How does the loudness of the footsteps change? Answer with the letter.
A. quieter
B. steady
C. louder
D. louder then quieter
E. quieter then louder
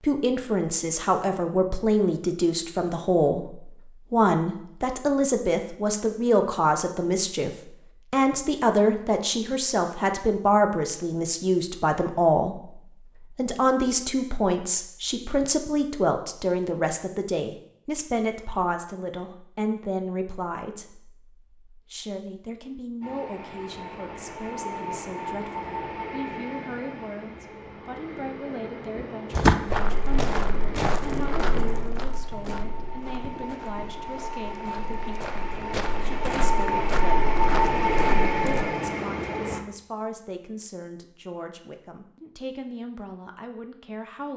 E.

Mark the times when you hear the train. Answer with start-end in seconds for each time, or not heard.
23.0-39.6.